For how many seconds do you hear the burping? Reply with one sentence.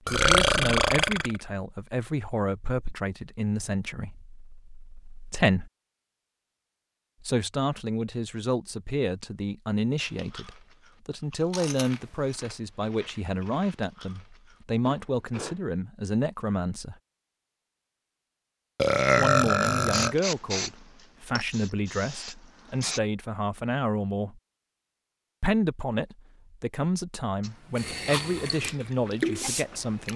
You can hear the burping for 3 seconds altogether.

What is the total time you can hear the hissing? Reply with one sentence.
The hissing can be heard for 6 seconds in total.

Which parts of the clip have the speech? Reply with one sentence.
The speech can be heard from 0.1 to 5.7 s, from 7.2 to 16.9 s, from 19.1 to 24.4 s and from 25.4 to 30.1 s.